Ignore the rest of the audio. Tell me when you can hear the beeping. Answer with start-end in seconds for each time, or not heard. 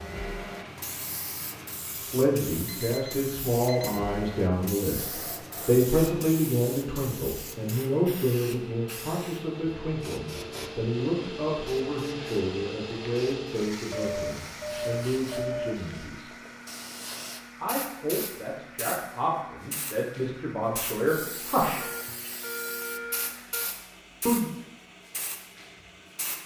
2.6-4.0, 13.9-15.9, 21.8-23.7.